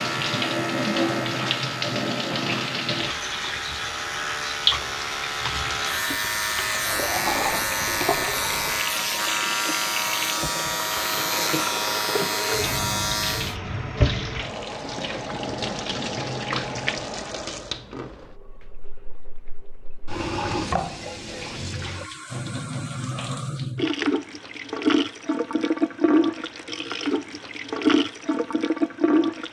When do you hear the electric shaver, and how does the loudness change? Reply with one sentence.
The electric shaver can be heard from 0.0 to 13.6 s, getting louder.